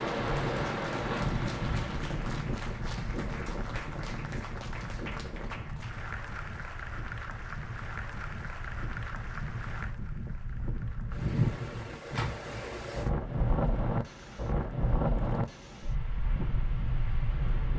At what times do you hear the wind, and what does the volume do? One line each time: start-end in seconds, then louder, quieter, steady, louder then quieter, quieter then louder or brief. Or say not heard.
0.0-17.7 quieter then louder.